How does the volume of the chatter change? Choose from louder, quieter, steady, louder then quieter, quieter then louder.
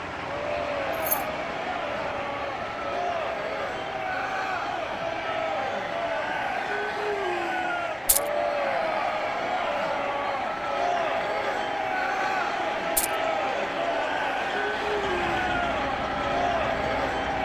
steady.